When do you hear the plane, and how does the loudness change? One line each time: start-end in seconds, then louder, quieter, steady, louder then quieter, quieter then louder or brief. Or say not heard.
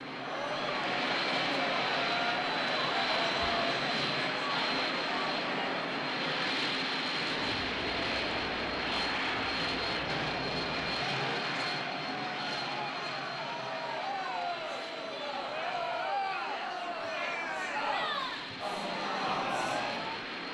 0.0-20.4 quieter.